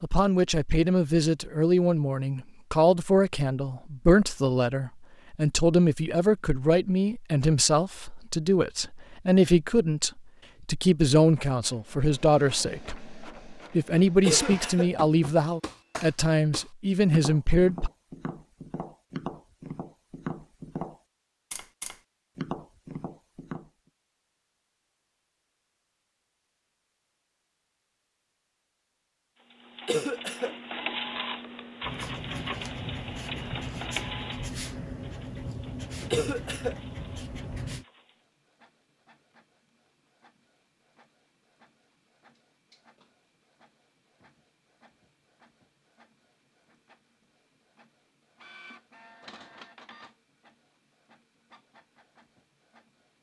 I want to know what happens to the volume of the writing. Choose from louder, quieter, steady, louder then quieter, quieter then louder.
steady.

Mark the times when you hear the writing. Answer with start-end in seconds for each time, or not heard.
31.8-37.9.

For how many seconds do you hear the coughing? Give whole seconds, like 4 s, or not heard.
2 s.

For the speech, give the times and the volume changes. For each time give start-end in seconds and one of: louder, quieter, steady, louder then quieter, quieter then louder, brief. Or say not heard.
0.0-17.9 steady.